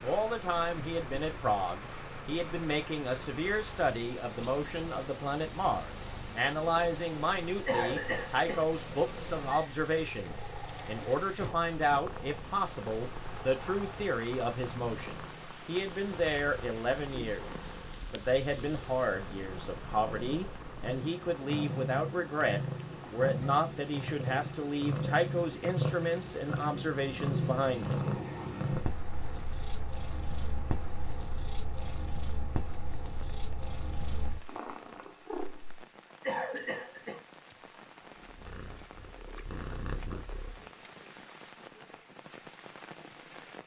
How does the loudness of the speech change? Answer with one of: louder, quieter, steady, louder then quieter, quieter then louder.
steady.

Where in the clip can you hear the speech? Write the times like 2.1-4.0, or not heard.
0.0-28.0.